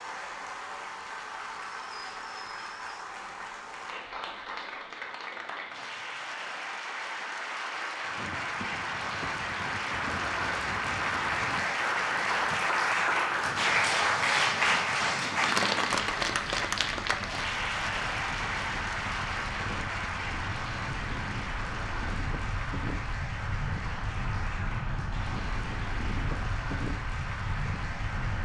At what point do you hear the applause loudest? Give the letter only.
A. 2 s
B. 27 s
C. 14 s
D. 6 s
C.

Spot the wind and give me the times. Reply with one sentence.
You can hear the wind from 8.1 to 28.4 s.